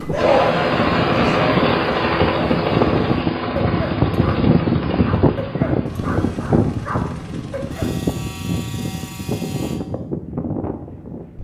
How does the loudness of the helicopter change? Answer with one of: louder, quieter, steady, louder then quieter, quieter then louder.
quieter.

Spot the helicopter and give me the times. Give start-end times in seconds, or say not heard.
0.0-9.8.